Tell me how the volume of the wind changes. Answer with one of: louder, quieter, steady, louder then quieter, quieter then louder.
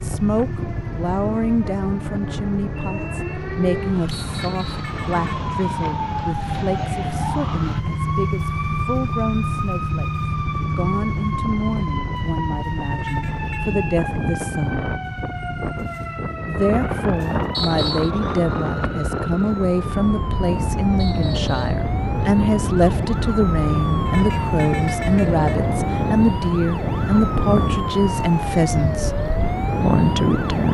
louder.